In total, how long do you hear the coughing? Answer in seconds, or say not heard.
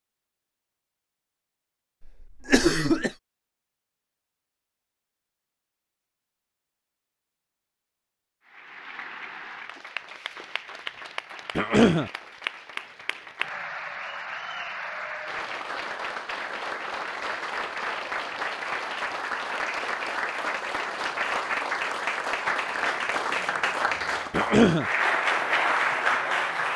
2 s.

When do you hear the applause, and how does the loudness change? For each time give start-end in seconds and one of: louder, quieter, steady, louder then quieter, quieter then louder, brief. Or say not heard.
8.4-26.7 louder.